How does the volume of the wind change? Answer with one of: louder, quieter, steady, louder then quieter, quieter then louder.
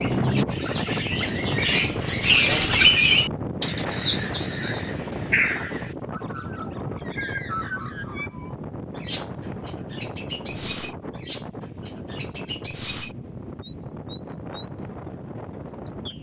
quieter.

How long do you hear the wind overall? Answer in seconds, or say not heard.
16 s.